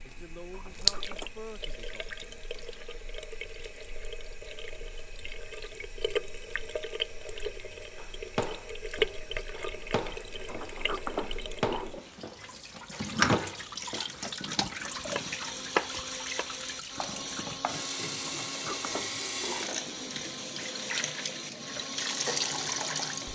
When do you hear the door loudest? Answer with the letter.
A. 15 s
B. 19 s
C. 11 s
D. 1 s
C.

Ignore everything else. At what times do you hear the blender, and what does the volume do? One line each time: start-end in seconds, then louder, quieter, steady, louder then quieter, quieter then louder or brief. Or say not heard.
14.8-23.2 steady.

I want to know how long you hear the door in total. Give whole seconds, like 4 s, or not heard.
4 s.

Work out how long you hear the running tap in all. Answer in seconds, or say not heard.
23 s.